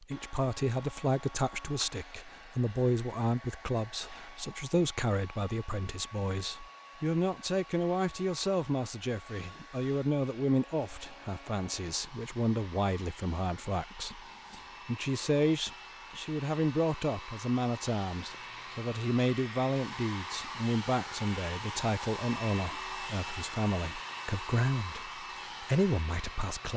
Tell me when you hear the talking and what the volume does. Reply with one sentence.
You can hear the talking from 0.0 to 26.7 s, at a steady volume.